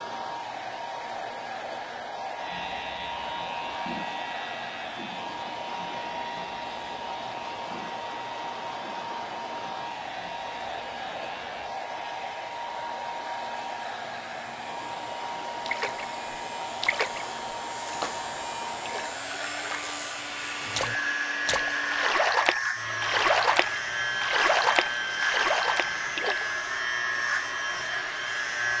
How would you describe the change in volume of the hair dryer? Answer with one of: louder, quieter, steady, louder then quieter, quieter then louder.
steady.